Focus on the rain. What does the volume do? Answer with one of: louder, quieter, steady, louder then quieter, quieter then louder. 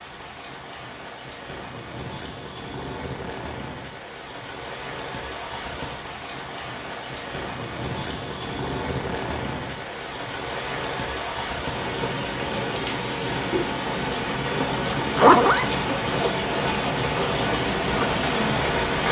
louder.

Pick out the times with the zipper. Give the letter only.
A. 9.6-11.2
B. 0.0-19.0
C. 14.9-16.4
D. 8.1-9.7
C.